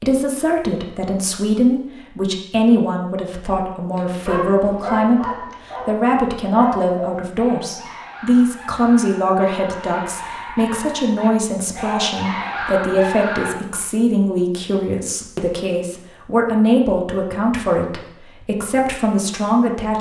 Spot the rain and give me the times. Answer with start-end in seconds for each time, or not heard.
not heard.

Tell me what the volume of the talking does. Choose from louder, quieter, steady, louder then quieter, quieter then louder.
steady.